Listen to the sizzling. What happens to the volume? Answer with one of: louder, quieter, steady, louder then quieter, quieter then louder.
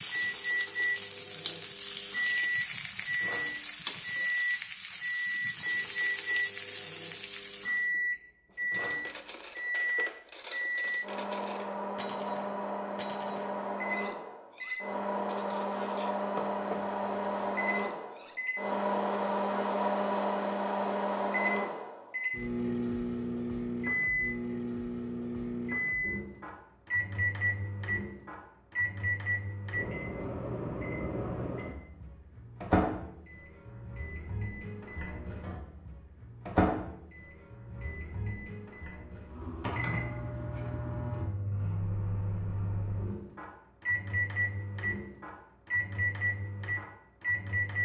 steady.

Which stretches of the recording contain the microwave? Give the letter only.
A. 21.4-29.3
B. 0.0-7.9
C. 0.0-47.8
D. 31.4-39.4
C.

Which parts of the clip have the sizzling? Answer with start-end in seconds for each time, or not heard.
0.0-7.9.